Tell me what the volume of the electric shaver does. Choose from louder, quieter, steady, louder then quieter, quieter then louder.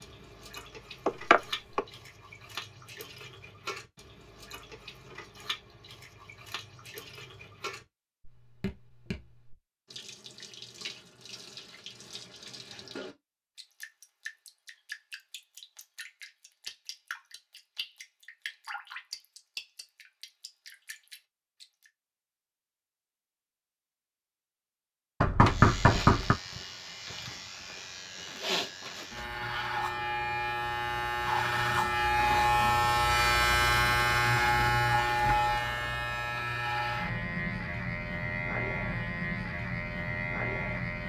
louder then quieter.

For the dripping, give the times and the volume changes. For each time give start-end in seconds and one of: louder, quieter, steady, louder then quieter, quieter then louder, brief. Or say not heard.
0.0-21.9 steady.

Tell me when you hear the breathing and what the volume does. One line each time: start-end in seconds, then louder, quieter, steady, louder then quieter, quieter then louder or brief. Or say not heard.
not heard.